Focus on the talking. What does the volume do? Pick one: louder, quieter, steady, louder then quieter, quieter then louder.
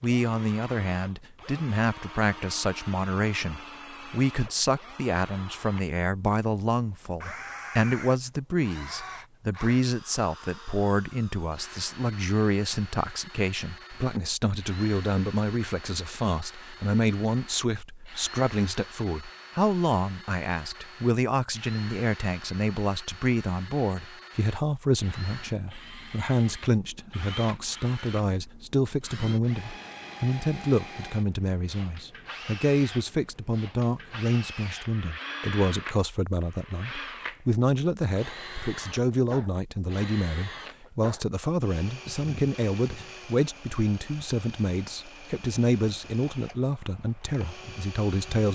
steady.